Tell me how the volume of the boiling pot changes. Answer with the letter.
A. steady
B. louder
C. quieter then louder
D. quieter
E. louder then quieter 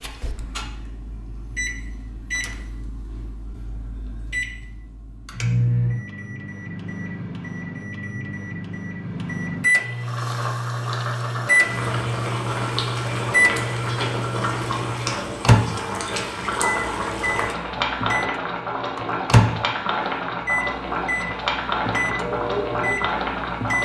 A.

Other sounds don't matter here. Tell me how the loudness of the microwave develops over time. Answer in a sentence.
The volume of the microwave goes up.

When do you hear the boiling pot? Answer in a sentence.
You can hear the boiling pot from 10.0 to 23.7 s.